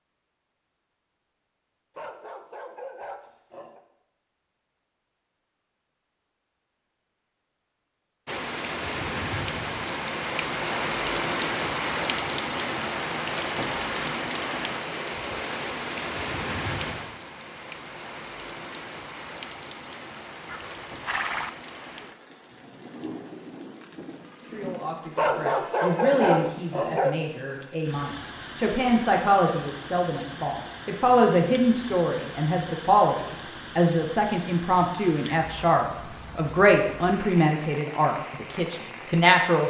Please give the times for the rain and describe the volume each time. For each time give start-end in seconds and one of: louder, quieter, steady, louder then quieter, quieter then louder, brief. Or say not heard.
8.2-39.6 quieter.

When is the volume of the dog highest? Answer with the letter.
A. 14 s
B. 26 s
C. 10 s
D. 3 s
B.